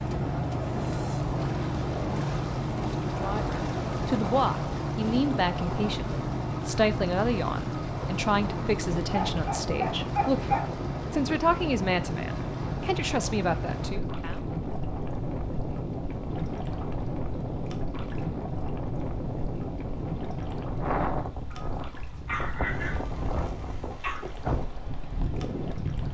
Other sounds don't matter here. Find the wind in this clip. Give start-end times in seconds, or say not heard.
0.0-26.0.